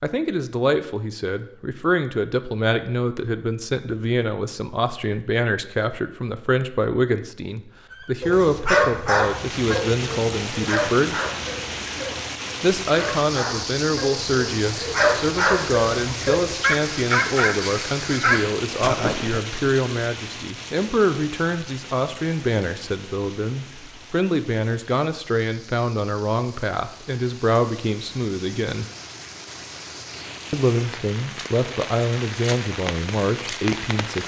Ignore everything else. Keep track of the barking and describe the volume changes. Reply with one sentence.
The loudness of the barking goes down, then up.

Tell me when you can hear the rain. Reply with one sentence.
The rain can be heard from 9.1 to 34.2 s.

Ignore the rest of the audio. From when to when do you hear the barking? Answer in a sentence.
The barking can be heard from 7.9 to 19.4 s.